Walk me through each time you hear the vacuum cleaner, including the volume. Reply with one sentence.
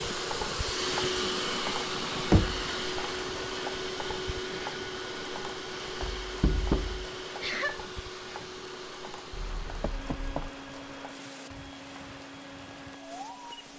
You can hear the vacuum cleaner from 0.0 to 13.7 s, getting quieter.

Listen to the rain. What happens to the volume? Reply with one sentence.
The volume of the rain goes down.